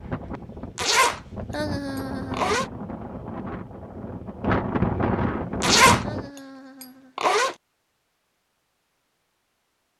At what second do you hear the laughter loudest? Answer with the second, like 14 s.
2 s.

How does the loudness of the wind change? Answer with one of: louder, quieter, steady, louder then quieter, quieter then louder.
louder.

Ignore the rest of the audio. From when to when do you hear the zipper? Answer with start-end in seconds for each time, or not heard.
0.8-1.2, 1.9-2.7, 5.6-6.0, 6.8-7.5.